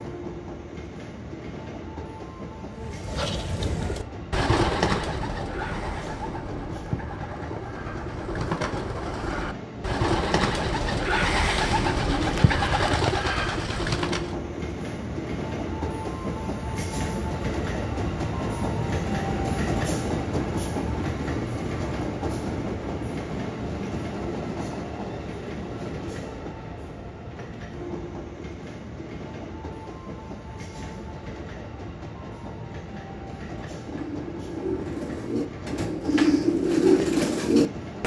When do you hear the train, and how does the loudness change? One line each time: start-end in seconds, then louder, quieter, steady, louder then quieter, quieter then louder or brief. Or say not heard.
0.0-38.0 louder then quieter.